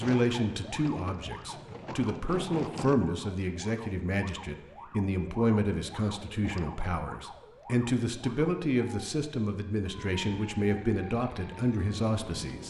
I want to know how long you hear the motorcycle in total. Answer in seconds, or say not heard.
not heard.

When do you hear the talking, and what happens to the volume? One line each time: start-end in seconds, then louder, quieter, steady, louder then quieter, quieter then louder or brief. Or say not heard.
0.0-12.6 steady.